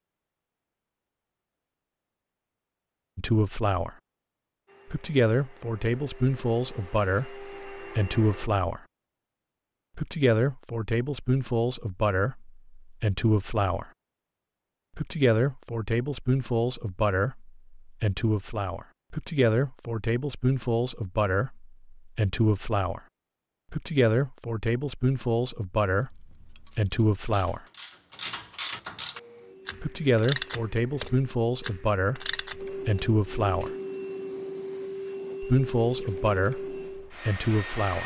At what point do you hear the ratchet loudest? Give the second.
30 s.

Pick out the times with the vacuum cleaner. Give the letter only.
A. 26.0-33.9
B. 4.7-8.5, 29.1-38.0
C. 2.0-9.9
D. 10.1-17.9
B.